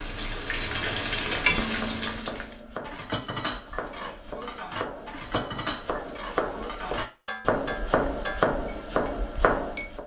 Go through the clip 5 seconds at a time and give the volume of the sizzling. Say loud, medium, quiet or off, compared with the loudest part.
loud, off.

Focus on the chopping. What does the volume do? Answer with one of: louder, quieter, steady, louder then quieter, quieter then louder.
louder.